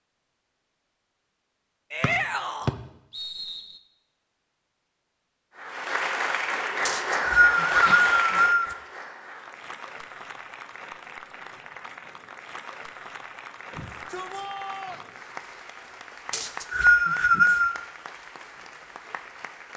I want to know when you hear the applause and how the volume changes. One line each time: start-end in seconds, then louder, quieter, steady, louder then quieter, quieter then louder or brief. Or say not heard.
5.5-19.7 quieter.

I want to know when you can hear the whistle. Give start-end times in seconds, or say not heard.
2.0-3.6, 6.8-8.8, 16.3-17.8.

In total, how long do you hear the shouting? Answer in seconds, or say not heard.
3 s.